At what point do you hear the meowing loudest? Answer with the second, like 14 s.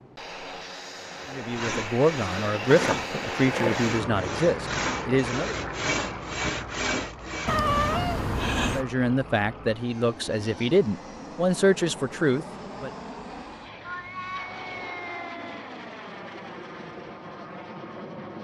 8 s.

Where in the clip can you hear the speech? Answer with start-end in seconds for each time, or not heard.
1.3-5.5, 8.7-12.9.